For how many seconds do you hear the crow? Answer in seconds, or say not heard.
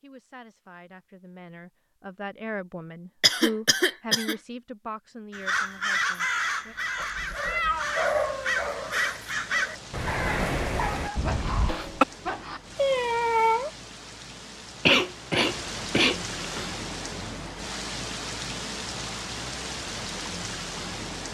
6 s.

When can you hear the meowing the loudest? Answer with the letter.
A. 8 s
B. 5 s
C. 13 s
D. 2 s
C.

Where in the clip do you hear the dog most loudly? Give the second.
8 s.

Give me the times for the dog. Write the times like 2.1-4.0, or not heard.
7.0-12.6.